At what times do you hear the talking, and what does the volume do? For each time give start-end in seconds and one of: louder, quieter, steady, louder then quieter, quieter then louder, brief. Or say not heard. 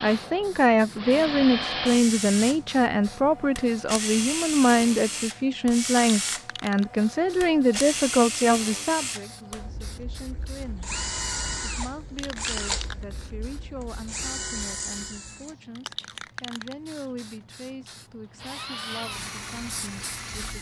0.0-10.9 quieter
11.6-20.5 steady.